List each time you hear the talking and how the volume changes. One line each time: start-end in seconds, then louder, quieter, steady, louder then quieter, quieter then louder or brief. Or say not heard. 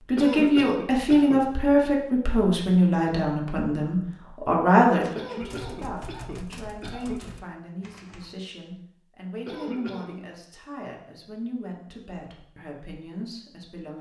0.1-13.9 quieter.